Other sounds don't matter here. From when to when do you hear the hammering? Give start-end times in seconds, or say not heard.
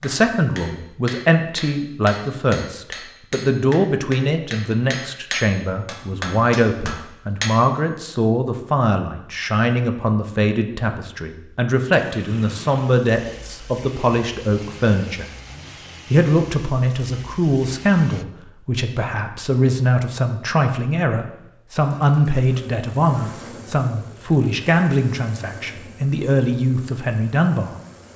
0.0-7.5.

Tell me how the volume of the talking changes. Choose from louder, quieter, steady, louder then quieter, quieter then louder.
steady.